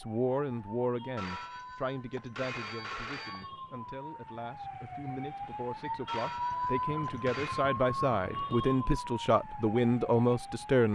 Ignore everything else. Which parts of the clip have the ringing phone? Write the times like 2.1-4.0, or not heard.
1.1-3.5, 6.0-7.7.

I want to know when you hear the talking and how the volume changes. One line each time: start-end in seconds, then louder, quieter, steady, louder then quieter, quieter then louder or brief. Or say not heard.
0.0-10.9 quieter then louder.